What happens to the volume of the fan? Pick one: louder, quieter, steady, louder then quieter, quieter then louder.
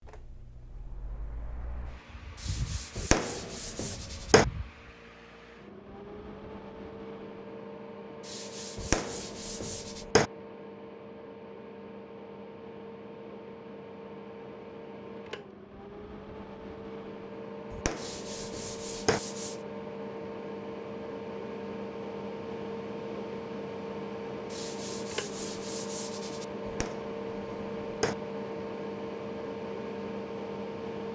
louder.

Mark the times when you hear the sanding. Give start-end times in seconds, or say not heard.
2.4-4.3, 8.2-10.1, 17.9-19.6, 24.5-26.4.